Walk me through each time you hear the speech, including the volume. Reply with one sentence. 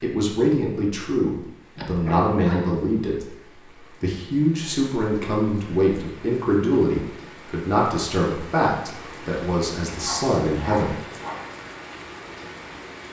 The speech can be heard from 0.0 to 10.9 s, at a steady volume.